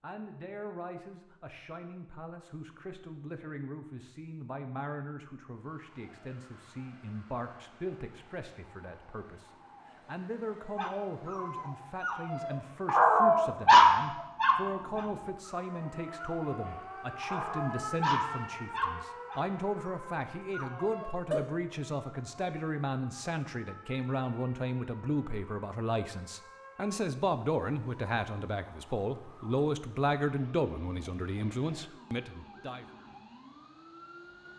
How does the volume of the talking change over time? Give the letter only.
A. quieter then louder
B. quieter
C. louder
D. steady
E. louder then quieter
C.